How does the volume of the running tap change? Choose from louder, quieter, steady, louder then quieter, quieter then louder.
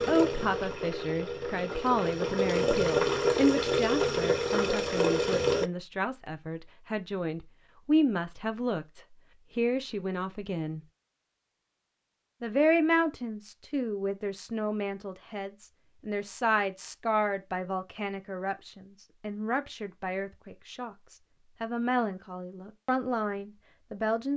louder.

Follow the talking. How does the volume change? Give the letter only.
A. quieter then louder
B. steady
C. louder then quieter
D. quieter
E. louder
B.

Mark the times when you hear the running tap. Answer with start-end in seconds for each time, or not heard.
0.0-5.7.